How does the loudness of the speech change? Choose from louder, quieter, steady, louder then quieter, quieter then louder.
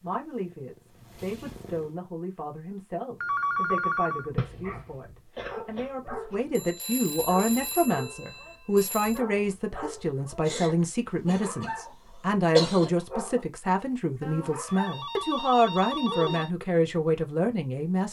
louder.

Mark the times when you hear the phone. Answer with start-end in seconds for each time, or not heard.
3.2-4.3, 6.5-9.2, 14.2-16.5.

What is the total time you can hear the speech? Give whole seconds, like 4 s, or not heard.
18 s.